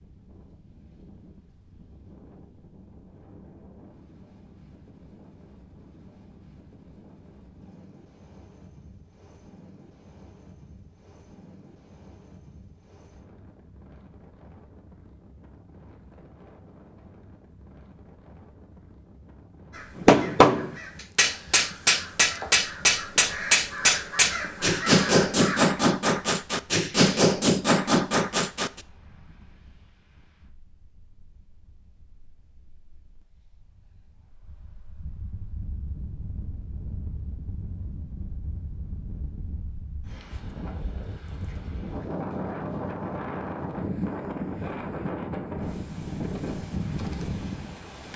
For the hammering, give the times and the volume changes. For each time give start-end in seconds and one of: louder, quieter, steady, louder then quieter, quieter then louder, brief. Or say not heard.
19.9-28.8 steady.